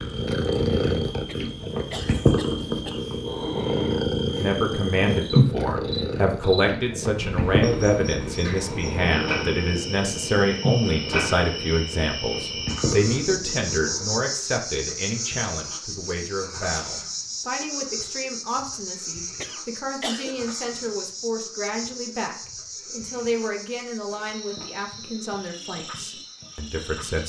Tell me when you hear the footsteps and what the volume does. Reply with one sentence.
You can't hear the footsteps here.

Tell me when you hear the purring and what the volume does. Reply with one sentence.
You can hear the purring from 0.0 to 14.1 s, getting quieter.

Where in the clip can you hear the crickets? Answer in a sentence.
You can hear the crickets from 0.0 to 27.2 s.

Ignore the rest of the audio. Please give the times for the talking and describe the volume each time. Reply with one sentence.
You can hear the talking from 4.3 to 27.2 s, getting quieter.